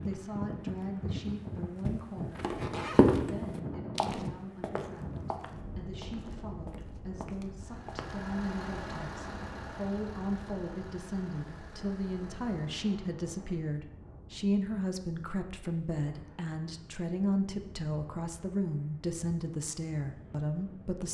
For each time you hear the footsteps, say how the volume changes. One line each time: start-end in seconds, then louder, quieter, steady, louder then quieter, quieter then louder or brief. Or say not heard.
0.0-8.2 louder then quieter.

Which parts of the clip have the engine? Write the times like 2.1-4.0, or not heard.
7.6-12.8.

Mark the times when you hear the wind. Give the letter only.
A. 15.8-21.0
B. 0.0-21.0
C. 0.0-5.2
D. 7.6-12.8
B.